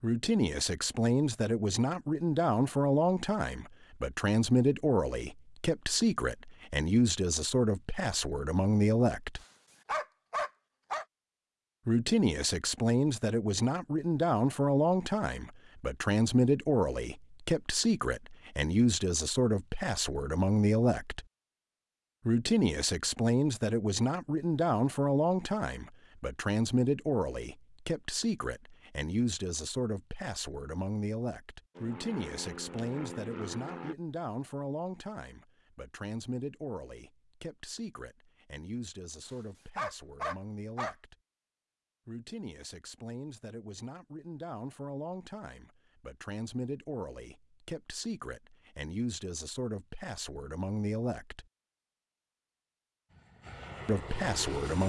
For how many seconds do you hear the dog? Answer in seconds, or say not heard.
3 s.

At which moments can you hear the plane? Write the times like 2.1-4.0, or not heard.
31.8-34.0, 53.1-54.8.